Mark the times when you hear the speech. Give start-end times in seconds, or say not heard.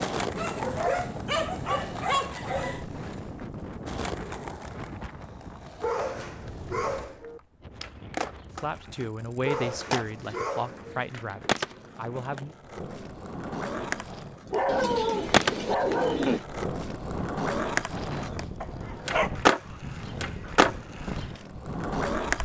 8.6-12.6.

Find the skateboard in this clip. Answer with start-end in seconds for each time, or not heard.
0.0-22.4.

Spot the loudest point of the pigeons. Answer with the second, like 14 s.
16 s.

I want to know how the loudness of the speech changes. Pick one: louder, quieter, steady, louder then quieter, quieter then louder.
quieter.